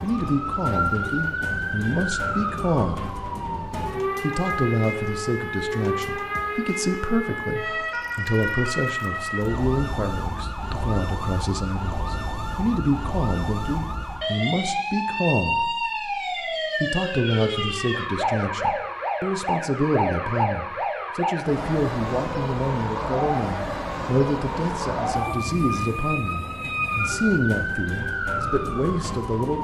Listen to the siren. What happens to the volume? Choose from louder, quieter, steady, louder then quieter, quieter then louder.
steady.